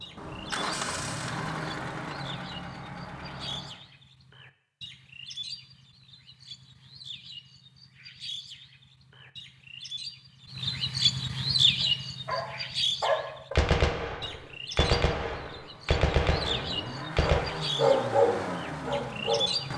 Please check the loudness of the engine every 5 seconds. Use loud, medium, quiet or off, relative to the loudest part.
loud, off, off, loud.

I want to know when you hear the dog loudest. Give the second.
18 s.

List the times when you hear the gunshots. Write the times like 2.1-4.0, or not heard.
13.6-17.4.